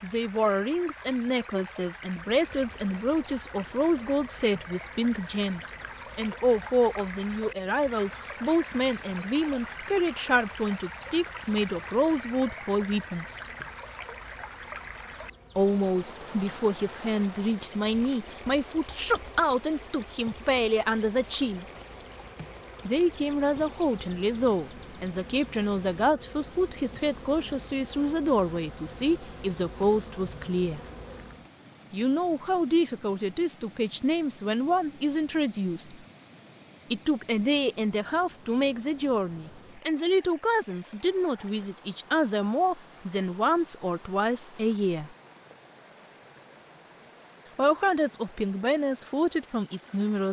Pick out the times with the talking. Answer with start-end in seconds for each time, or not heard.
0.0-13.4, 15.6-21.6, 22.9-30.8, 31.9-36.0, 36.9-45.1, 47.5-50.2.